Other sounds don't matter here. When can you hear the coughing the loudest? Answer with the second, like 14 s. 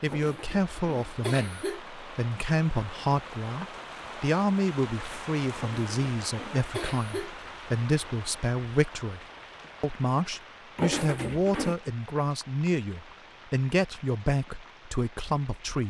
11 s.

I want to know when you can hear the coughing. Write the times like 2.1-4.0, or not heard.
0.1-1.8, 5.5-7.3, 10.8-11.8.